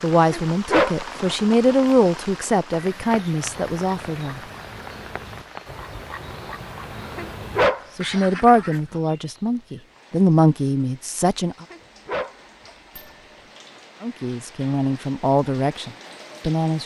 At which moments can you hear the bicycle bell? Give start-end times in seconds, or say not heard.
12.9-13.3.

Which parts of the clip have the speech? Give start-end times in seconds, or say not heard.
0.0-4.4, 8.0-11.7, 14.0-16.8.